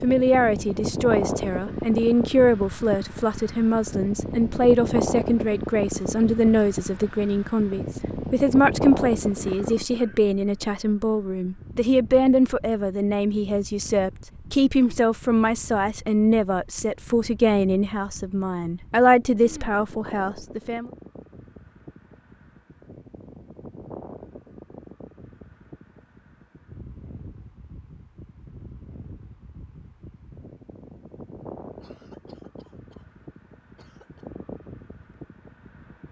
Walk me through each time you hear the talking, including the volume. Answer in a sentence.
The talking can be heard from 0.0 to 20.9 s, at a steady volume.